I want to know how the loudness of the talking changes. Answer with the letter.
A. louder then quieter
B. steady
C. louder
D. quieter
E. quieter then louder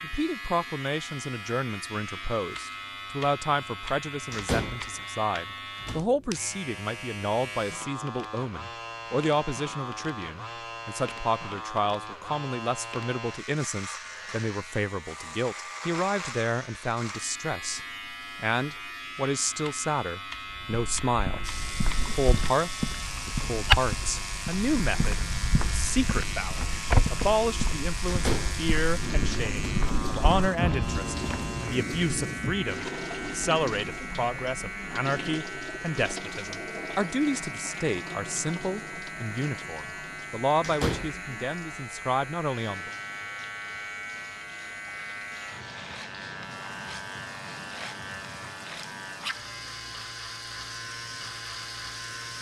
B.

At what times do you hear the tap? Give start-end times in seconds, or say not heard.
21.4-52.3.